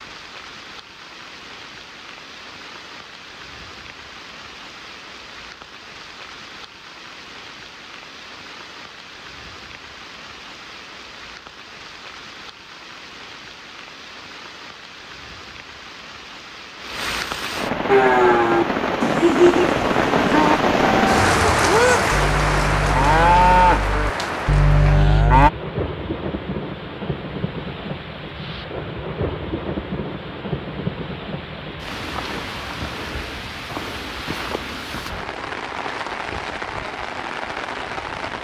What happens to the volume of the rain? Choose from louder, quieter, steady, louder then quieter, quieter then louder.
louder then quieter.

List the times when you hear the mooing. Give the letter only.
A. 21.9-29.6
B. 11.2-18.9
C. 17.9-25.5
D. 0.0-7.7
C.